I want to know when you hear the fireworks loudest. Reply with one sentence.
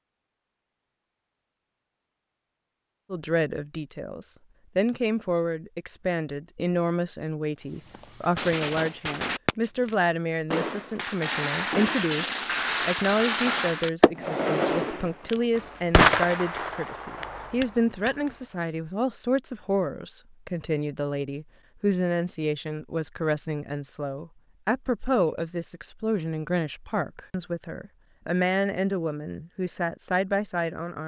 The loudest moment of the fireworks is at 16 seconds.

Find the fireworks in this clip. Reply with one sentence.
You can hear the fireworks from 7.8 to 18.3 s.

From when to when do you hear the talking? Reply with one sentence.
The talking can be heard from 3.1 to 31.0 s.